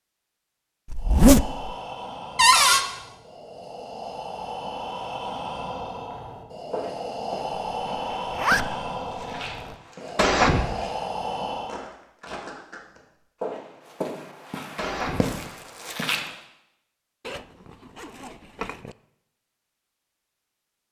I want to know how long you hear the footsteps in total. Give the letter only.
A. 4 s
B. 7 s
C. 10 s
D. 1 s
C.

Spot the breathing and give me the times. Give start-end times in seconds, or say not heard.
0.9-11.8.